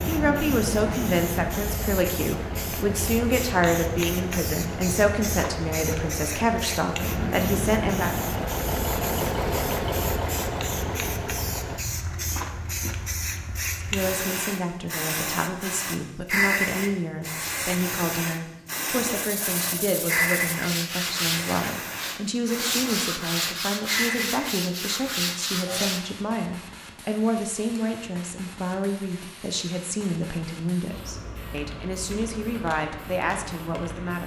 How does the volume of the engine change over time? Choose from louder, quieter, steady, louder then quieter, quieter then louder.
louder.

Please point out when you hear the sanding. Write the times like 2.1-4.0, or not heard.
19.1-26.1.